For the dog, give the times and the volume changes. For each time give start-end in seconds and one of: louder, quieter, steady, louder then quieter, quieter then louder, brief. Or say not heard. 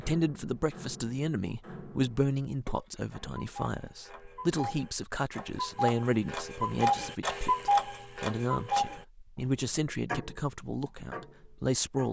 not heard.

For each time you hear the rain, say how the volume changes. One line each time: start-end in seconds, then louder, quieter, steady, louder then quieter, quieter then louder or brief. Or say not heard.
not heard.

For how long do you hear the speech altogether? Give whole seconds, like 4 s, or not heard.
12 s.